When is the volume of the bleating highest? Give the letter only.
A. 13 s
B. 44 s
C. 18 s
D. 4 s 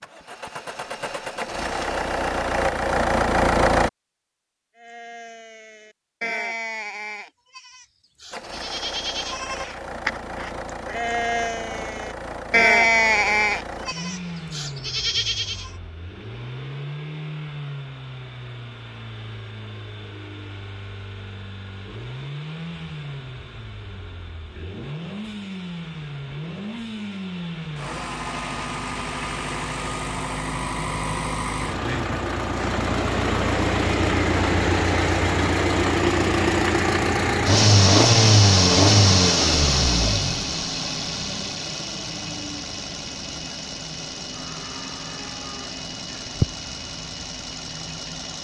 A.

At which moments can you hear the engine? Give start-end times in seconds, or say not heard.
0.0-3.9, 8.3-48.3.